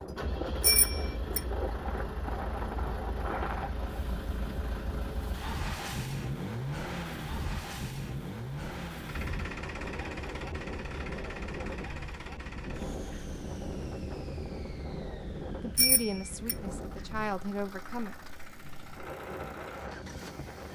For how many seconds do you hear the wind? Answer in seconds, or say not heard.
21 s.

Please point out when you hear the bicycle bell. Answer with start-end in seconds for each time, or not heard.
0.6-1.4, 15.8-16.6.